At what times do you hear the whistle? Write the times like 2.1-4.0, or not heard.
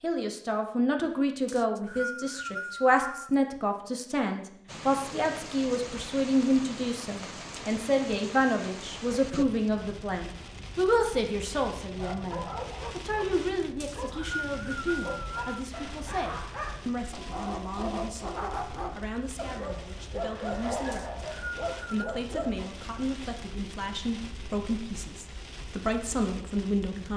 1.4-3.4, 13.8-15.6, 20.9-22.2.